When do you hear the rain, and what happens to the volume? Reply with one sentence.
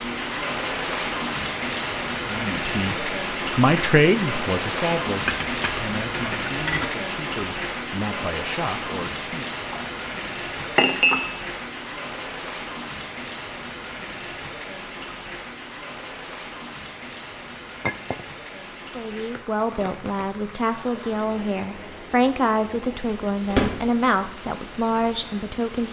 The rain can be heard from 0.0 to 25.8 s, getting quieter.